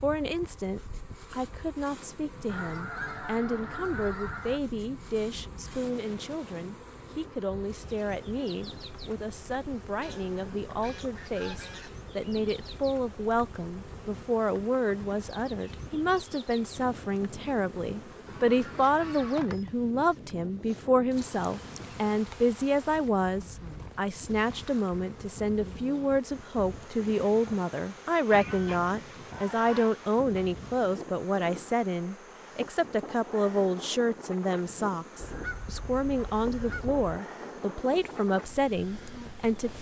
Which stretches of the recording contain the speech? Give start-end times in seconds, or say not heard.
0.0-39.7.